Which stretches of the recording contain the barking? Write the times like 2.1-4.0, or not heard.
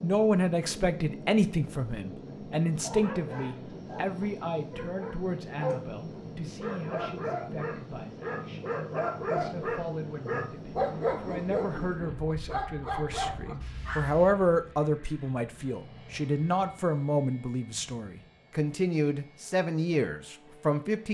2.8-14.3.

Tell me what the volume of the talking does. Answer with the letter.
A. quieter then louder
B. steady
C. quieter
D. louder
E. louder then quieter
A.